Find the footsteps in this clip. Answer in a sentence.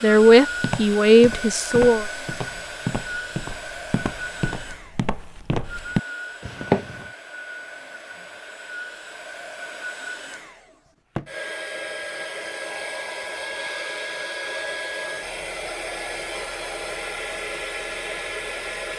You can hear the footsteps from 0.1 to 7.0 s.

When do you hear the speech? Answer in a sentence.
You can hear the speech from 0.0 to 2.0 s.